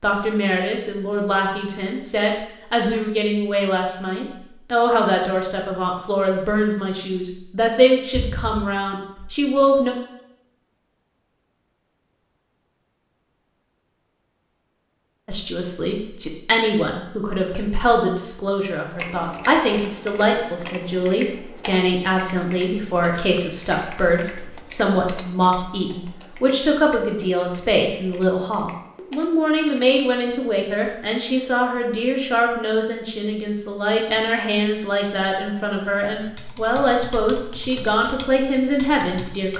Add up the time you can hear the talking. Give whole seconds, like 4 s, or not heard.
34 s.